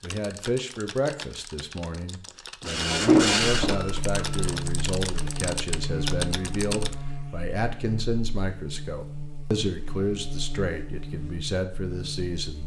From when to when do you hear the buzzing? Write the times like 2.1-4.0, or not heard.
3.4-12.6.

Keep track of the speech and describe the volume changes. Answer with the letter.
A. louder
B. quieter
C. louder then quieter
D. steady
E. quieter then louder
D.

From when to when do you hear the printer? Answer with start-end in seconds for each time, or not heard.
2.6-4.7.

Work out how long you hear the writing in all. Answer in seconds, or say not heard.
not heard.